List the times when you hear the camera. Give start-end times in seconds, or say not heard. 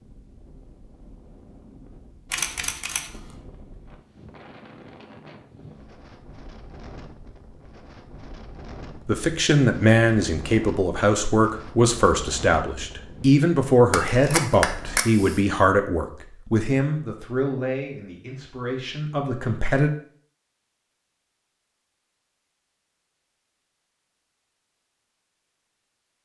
2.3-3.1, 13.9-15.4.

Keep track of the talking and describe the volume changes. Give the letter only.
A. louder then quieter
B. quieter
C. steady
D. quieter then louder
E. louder
B.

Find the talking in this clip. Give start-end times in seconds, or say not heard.
9.1-19.9.